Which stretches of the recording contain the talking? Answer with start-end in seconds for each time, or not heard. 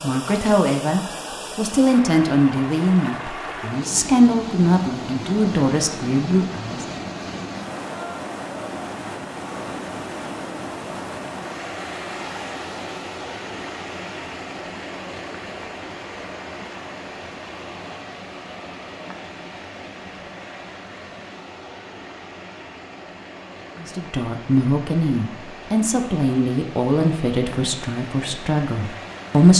0.0-6.8, 23.8-29.5.